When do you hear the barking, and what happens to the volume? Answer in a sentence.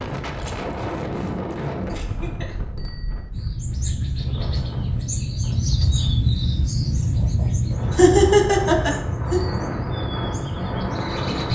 The barking can't be heard in this clip.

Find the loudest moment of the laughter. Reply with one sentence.
The loudest moment of the laughter is at 8 seconds.